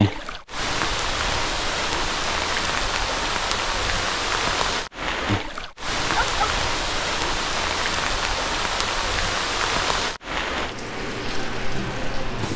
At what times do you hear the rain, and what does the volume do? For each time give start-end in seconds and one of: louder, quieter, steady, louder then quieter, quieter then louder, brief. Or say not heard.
0.0-12.5 steady.